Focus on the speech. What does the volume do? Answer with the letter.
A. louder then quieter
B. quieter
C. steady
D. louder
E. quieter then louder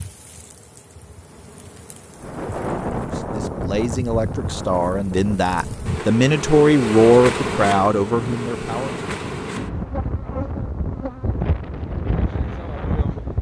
A.